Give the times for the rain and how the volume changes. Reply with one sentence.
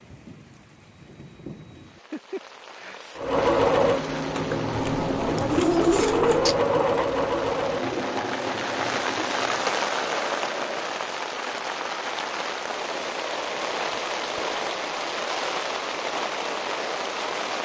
The rain can be heard from 0.0 to 17.6 s, getting louder.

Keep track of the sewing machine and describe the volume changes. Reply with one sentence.
The volume of the sewing machine goes down.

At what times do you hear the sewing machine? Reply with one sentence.
You can hear the sewing machine from 3.1 to 10.9 s.